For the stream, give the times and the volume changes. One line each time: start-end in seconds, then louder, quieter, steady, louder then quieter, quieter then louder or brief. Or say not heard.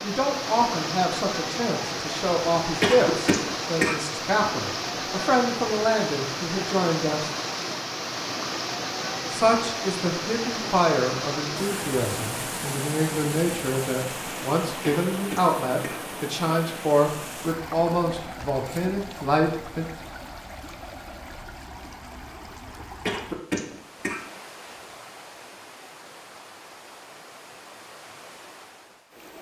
0.0-29.3 quieter.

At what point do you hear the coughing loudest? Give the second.
3 s.